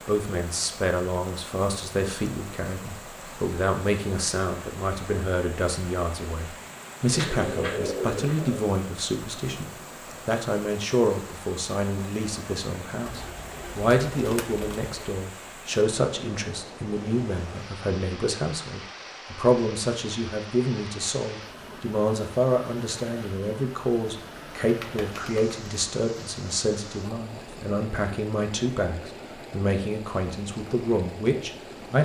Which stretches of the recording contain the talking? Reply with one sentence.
The talking can be heard from 0.1 to 32.0 s.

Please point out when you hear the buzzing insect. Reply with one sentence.
You can't hear the buzzing insect here.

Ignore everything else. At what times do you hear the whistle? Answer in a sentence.
The whistle can't be heard in this clip.